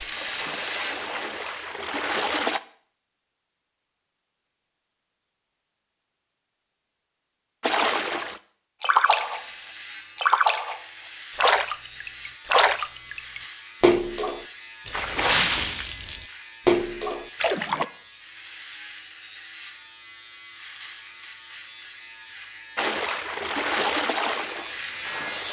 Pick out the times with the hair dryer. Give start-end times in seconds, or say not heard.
not heard.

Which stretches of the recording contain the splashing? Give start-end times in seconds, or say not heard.
0.0-2.6, 7.6-17.9, 22.8-25.4.